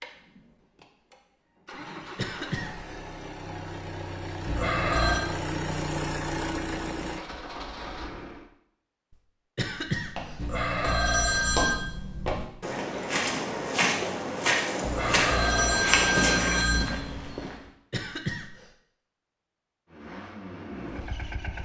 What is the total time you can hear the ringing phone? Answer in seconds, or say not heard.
4 s.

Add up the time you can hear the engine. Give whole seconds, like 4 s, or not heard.
10 s.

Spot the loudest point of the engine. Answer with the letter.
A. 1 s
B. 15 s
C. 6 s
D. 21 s
C.